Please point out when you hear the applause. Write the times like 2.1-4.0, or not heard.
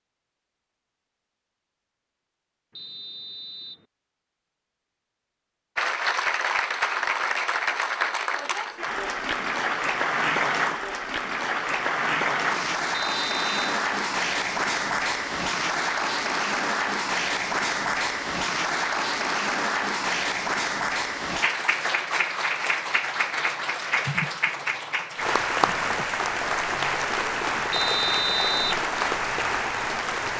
5.8-30.3.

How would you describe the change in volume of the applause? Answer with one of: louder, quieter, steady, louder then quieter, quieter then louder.
steady.